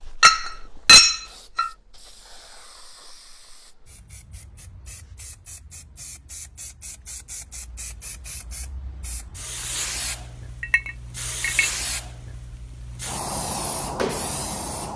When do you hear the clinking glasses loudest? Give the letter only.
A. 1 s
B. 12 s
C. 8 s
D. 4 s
A.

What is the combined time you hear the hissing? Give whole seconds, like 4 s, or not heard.
15 s.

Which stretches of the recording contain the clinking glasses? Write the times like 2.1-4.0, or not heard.
0.2-1.7, 10.6-11.7.